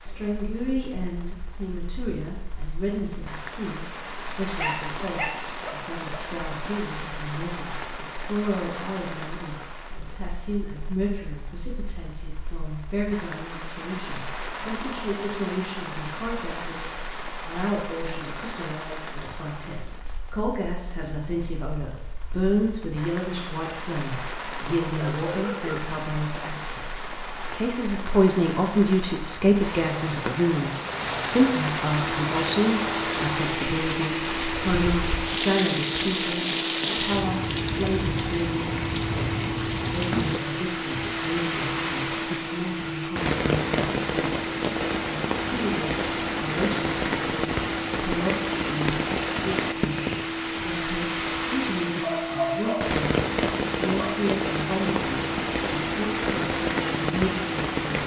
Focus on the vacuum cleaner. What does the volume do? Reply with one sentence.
The loudness of the vacuum cleaner stays about the same.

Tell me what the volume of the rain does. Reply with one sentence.
The volume of the rain goes up.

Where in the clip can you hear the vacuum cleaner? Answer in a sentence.
The vacuum cleaner can be heard from 32.0 to 57.8 s.